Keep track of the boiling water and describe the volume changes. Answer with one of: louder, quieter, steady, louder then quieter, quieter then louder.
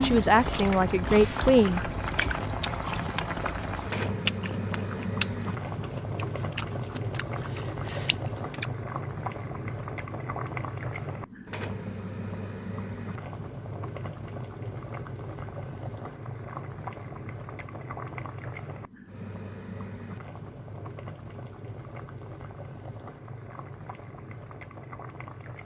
quieter.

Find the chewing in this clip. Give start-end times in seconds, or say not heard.
0.5-8.8.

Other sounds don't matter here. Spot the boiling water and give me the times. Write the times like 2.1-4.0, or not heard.
0.0-25.6.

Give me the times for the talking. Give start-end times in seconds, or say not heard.
0.0-1.9.